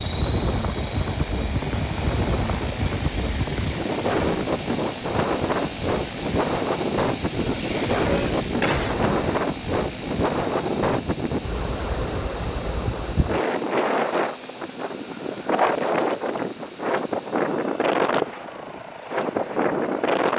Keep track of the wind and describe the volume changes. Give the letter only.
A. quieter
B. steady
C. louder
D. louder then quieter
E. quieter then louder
B.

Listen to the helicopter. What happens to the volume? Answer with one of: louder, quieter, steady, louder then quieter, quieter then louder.
quieter.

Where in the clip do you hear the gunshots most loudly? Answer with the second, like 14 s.
9 s.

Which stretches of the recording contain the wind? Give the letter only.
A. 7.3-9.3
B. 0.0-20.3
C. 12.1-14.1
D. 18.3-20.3
B.